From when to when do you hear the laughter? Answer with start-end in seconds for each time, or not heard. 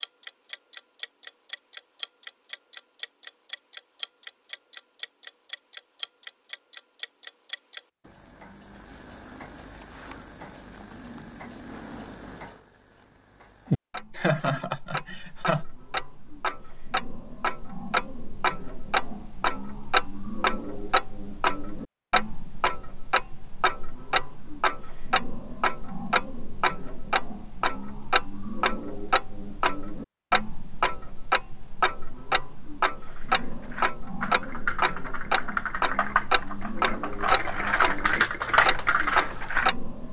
14.2-15.7.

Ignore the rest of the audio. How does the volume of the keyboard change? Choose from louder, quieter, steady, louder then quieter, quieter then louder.
louder.